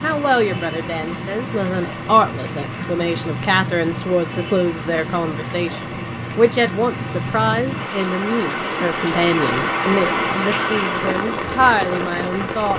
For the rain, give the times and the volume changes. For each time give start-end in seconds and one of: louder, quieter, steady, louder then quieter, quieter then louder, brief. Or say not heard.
0.0-12.7 louder.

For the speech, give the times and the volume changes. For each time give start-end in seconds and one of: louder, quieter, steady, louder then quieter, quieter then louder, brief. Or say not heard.
0.0-12.7 steady.